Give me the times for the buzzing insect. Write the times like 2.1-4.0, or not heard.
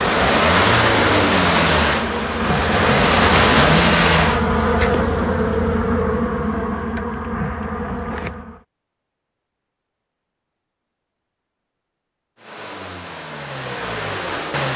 0.0-8.6.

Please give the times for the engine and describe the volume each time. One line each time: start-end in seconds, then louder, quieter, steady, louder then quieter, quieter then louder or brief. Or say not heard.
0.0-4.5 quieter then louder
12.3-14.7 brief.